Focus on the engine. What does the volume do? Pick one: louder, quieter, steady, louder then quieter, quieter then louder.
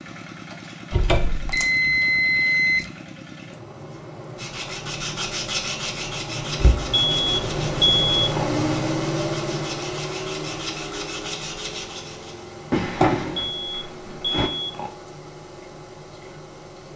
louder then quieter.